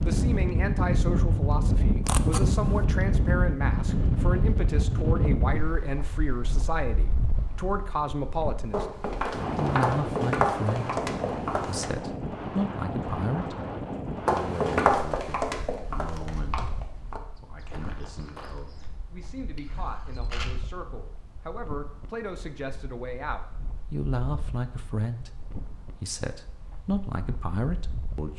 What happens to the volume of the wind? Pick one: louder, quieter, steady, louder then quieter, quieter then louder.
quieter.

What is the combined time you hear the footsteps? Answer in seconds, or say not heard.
8 s.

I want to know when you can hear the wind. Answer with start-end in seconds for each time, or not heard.
0.0-28.3.